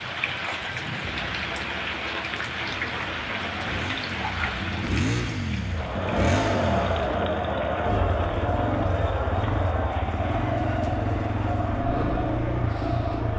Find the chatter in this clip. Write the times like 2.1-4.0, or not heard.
5.7-13.3.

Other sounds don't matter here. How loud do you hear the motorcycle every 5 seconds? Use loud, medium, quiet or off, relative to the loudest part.
medium, loud, loud.